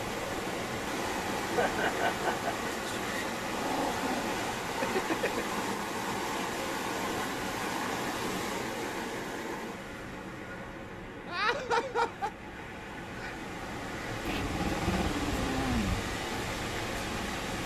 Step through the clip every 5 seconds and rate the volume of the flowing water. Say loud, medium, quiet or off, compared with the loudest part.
loud, loud, medium, loud.